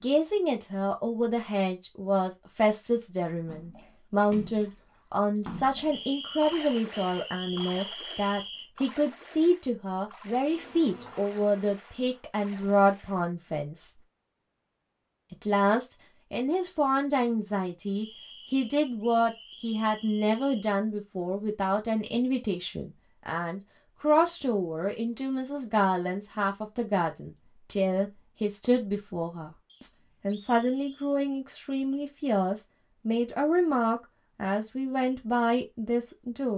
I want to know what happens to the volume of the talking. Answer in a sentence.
The volume of the talking stays about the same.